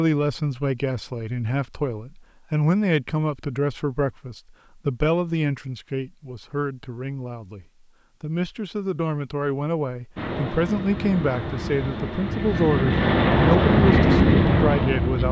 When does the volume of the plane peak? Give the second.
14 s.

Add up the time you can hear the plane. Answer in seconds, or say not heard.
5 s.